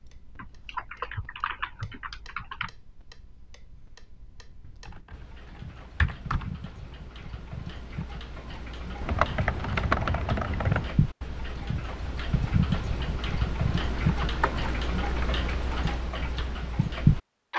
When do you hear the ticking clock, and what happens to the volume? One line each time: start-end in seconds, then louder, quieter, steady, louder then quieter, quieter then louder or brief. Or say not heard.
0.0-17.5 louder.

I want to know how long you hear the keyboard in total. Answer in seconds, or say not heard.
8 s.